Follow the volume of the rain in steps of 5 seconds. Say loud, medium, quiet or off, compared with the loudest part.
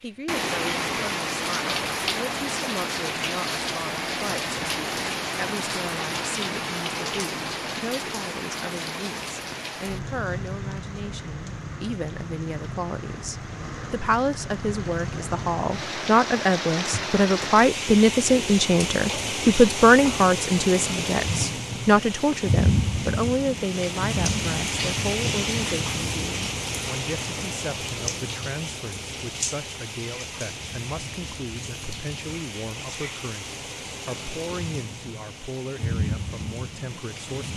loud, loud, medium, loud, loud, loud, medium, medium.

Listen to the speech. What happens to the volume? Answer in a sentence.
The loudness of the speech goes up, then down.